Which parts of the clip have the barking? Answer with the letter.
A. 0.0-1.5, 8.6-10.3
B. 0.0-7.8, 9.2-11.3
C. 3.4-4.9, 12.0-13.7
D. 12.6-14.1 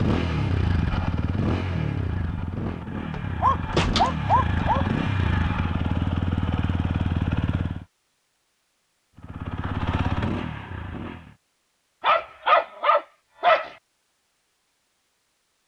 C.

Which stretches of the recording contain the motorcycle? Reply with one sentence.
The motorcycle can be heard from 0.0 to 7.8 s and from 9.2 to 11.3 s.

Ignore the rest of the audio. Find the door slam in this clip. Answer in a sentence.
The door slam can be heard from 3.1 to 4.7 s.